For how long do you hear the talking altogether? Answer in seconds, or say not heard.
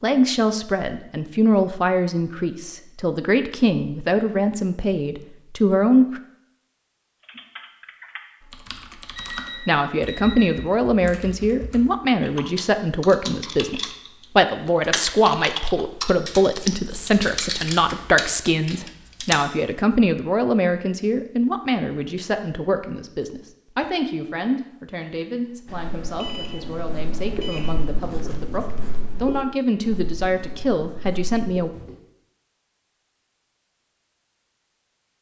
28 s.